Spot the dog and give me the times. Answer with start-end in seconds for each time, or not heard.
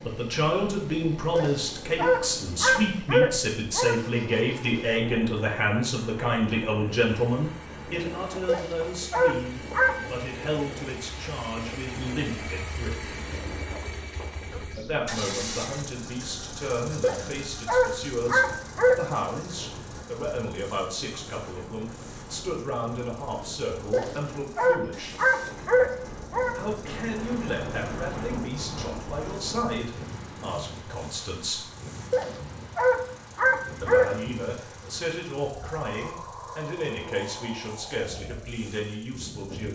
1.4-4.0, 8.4-10.0, 17.0-19.0, 23.9-26.6, 32.1-34.1.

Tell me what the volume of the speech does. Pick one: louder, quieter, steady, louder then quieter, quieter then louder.
quieter.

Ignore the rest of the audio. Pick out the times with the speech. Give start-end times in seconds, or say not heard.
0.1-13.1, 14.8-25.1, 26.6-31.7, 33.8-39.6.